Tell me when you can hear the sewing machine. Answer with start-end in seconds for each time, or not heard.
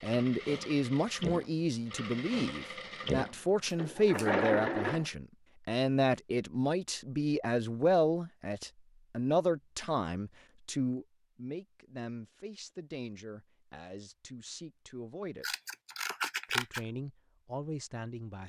0.0-5.0.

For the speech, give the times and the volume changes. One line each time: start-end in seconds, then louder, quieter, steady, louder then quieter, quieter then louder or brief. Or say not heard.
0.0-15.4 quieter
16.4-18.4 brief.